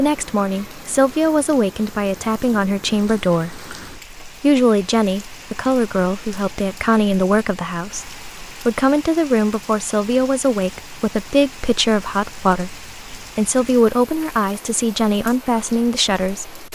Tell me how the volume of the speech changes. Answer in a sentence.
The loudness of the speech stays about the same.